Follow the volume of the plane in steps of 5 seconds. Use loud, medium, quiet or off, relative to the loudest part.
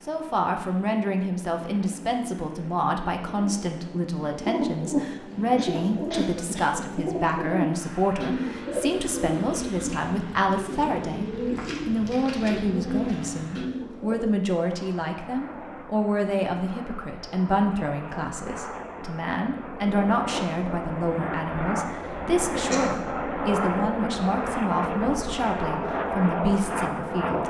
quiet, quiet, quiet, medium, loud, loud.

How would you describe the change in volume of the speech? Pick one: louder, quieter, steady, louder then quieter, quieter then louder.
steady.